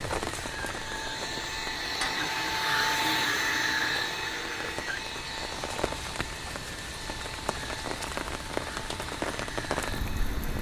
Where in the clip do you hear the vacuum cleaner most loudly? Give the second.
3 s.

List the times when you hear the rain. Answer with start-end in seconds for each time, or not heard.
0.0-10.5.